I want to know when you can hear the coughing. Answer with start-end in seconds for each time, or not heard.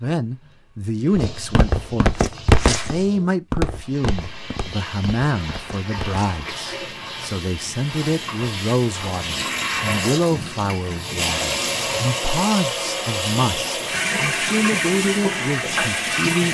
not heard.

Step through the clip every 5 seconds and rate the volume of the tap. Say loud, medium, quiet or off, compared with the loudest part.
quiet, medium, loud, loud.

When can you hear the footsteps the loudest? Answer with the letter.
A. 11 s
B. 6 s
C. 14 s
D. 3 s
D.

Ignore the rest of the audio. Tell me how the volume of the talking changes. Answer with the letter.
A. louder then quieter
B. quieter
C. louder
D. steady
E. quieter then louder
D.